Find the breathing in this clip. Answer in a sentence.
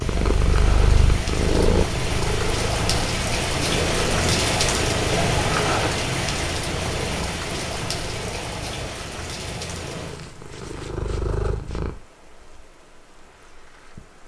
The breathing can't be heard in this clip.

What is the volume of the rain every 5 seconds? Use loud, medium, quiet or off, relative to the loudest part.
loud, loud, quiet.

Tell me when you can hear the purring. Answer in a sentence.
The purring can be heard from 0.0 to 11.9 s.